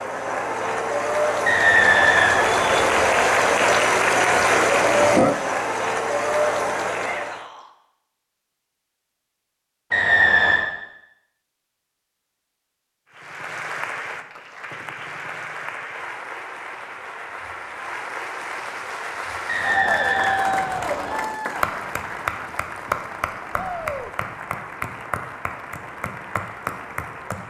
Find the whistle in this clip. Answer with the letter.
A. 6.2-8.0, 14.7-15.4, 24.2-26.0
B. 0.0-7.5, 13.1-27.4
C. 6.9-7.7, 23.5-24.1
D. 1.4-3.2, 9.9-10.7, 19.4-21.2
D.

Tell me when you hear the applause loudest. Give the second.
5 s.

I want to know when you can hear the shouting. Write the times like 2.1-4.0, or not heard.
6.9-7.7, 23.5-24.1.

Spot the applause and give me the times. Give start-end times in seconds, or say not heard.
0.0-7.5, 13.1-27.4.